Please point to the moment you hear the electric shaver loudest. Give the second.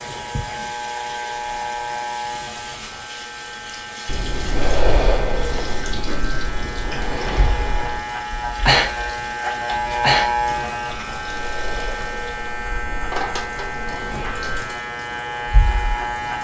10 s.